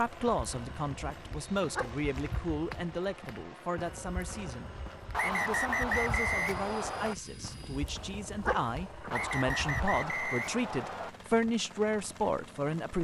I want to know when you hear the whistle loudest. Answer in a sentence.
The volume of the whistle peaks at 6 seconds.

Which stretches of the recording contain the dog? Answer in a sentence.
You can hear the dog from 1.8 to 2.4 s and from 8.4 to 9.1 s.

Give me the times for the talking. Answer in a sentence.
You can hear the talking from 0.0 to 13.0 s.